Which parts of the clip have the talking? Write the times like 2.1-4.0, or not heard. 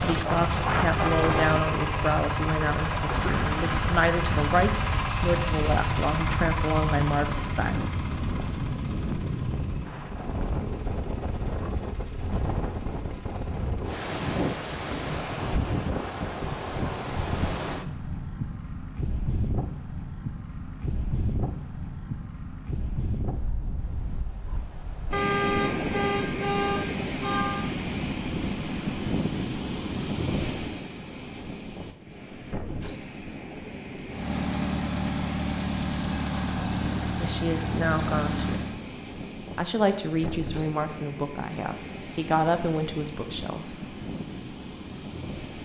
0.0-7.8, 37.2-38.6, 39.5-43.8.